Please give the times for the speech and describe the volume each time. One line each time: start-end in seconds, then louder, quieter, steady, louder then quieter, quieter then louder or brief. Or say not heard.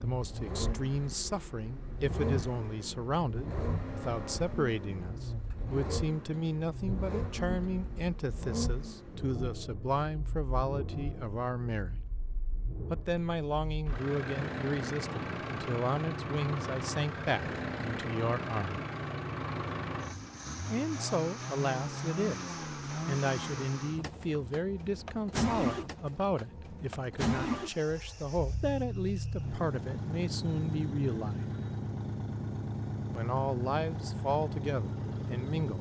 0.0-12.1 steady
12.9-18.8 steady
20.6-31.4 steady
33.1-35.7 brief.